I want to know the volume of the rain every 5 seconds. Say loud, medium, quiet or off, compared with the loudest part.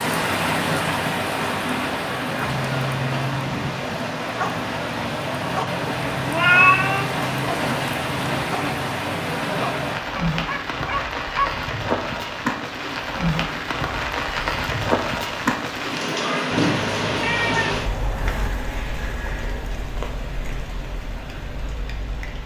loud, loud, loud, loud, medium.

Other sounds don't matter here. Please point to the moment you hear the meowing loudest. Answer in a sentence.
The volume of the meowing peaks at 7 seconds.